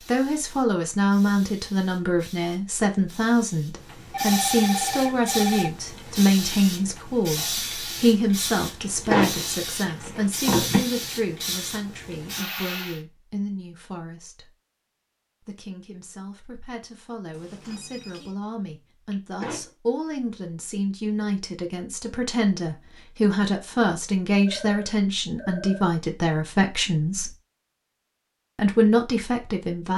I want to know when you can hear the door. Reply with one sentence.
You can hear the door from 8.8 to 10.8 s and from 19.1 to 19.7 s.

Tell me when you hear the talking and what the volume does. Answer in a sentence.
You can hear the talking from 0.1 to 14.6 s, getting quieter; from 15.4 to 27.3 s, getting louder; and briefly from 28.6 to 29.9 s.